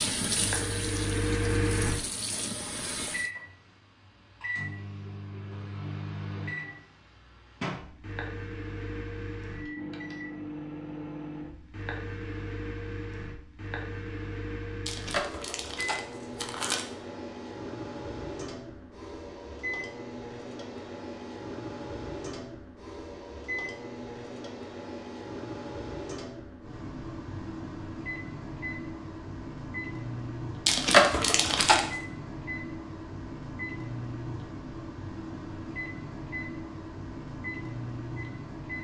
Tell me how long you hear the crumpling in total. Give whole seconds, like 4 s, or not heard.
3 s.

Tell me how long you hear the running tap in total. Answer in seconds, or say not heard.
3 s.